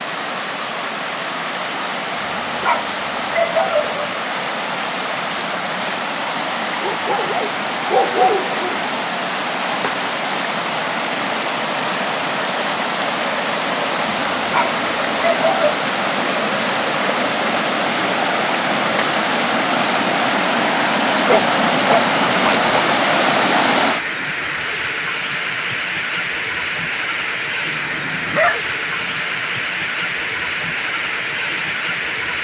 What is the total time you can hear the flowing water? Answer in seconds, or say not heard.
32 s.